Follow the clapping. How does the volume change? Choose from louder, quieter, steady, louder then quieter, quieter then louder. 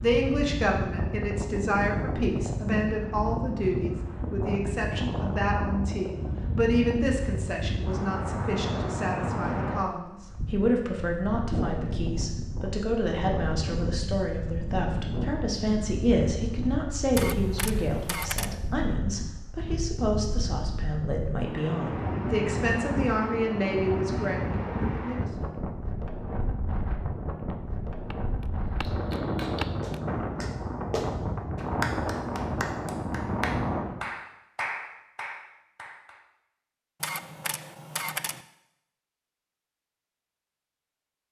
louder.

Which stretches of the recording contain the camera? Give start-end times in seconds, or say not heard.
17.1-18.6, 37.0-38.5.